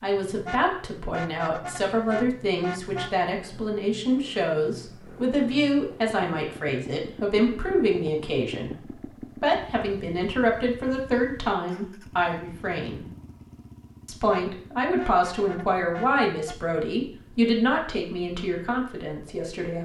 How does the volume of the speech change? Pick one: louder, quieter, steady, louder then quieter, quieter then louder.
steady.